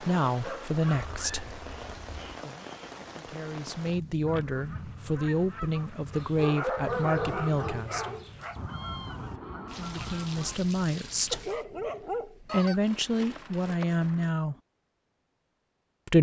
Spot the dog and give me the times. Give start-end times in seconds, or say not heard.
0.3-1.4, 6.1-8.6, 11.3-12.7.